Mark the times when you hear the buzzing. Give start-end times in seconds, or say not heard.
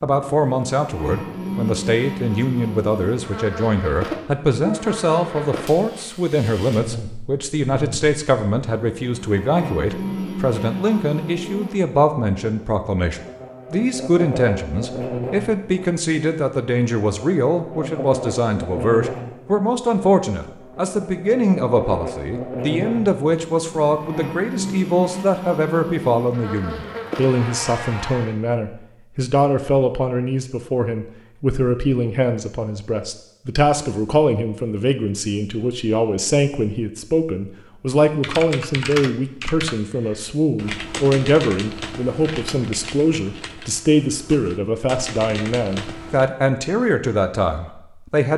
0.1-28.4.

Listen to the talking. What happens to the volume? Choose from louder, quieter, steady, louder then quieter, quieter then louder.
steady.